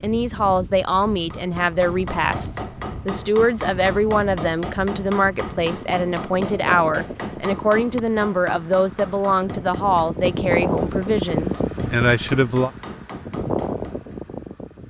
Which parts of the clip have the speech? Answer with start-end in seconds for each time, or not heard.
0.0-12.7.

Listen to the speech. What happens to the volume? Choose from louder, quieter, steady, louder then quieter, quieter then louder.
steady.